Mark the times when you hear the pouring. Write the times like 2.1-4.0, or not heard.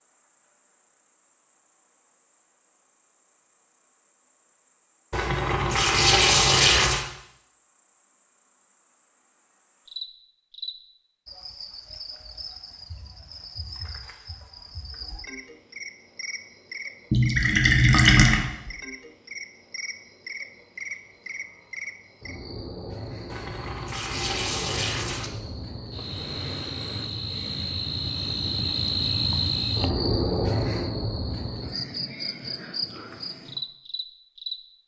5.1-7.0, 17.1-18.4, 23.3-25.3.